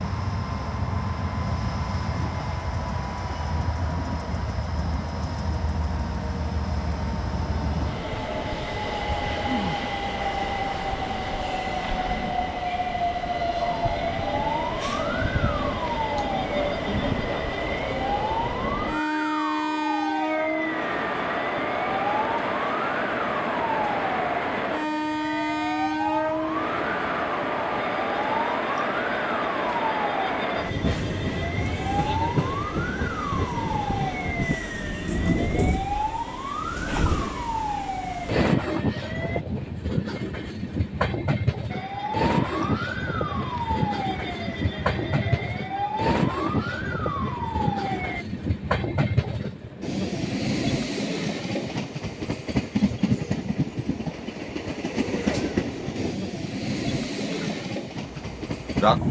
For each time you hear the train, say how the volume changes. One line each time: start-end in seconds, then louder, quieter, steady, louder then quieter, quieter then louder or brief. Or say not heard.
0.0-59.0 steady.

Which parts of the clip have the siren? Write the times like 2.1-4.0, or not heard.
13.6-39.5, 41.7-48.2.